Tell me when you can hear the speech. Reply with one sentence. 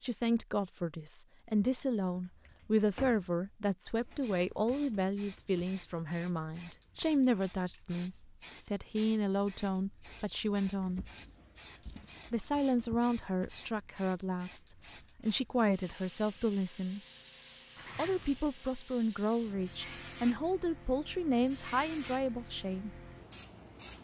The speech can be heard from 0.0 to 11.1 s, from 12.3 to 17.0 s and from 17.9 to 22.9 s.